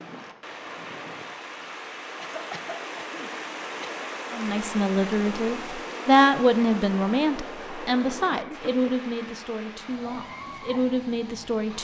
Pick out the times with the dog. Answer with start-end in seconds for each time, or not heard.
not heard.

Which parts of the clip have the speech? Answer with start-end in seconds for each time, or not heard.
4.3-11.8.